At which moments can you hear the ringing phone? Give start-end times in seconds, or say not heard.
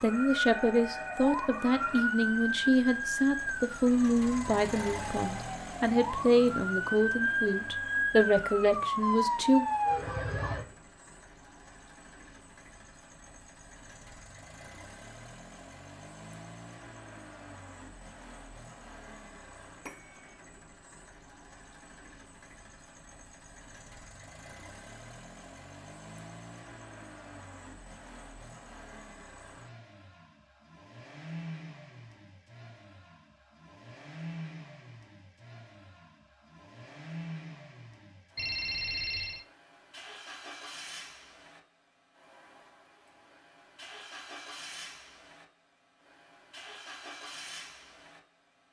0.1-2.0, 19.9-20.3, 38.4-39.5.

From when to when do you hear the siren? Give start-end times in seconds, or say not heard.
0.0-10.7.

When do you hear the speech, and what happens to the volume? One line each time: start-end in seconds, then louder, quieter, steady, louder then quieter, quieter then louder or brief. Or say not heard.
0.0-9.7 steady.